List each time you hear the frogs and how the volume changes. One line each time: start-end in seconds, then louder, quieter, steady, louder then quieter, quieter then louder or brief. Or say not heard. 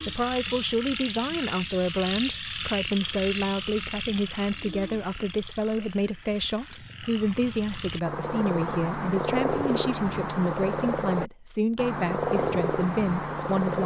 0.0-13.8 quieter then louder.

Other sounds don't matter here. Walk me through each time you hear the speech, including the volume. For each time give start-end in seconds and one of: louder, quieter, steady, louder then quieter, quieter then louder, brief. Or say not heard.
0.1-13.8 steady.